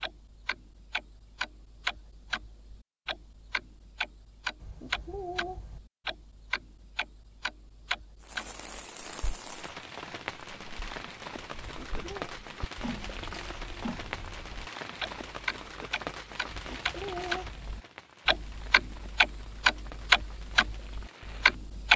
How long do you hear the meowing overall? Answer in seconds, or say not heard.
3 s.